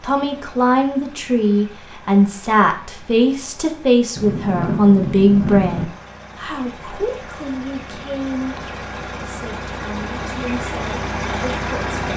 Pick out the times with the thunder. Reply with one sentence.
You can hear the thunder from 4.2 to 5.8 s.